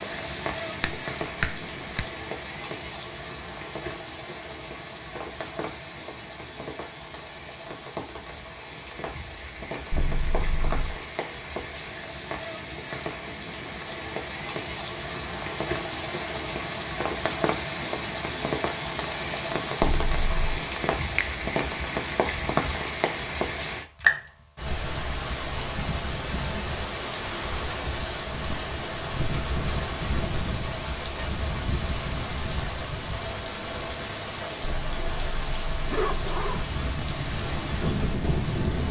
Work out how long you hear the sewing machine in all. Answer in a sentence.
The sewing machine can't be heard in this clip.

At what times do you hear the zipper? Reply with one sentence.
The zipper can be heard from 9.9 to 10.9 s, from 19.8 to 20.6 s and from 34.6 to 36.6 s.